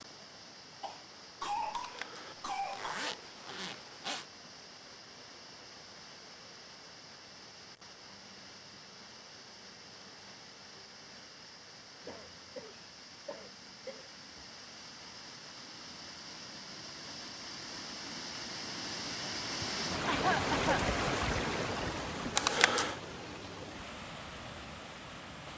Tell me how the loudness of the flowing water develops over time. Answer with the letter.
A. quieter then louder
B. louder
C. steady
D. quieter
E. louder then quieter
B.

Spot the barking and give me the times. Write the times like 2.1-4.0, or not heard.
not heard.